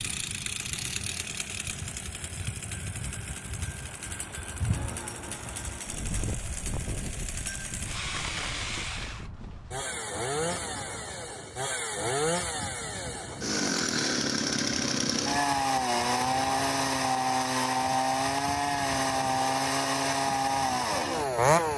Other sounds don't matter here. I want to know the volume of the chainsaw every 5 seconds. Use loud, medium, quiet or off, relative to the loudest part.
quiet, quiet, medium, loud, loud.